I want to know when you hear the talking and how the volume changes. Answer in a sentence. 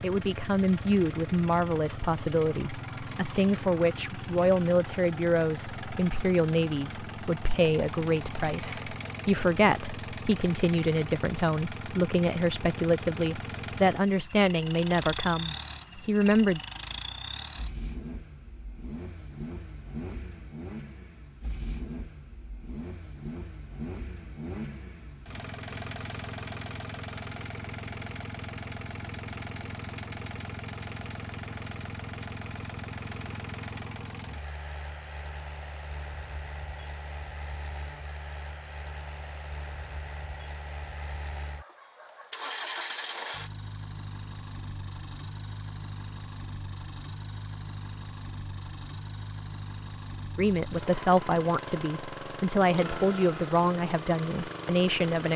The talking can be heard from 0.0 to 16.6 s, at a steady volume; and from 50.4 to 55.3 s, getting quieter then louder.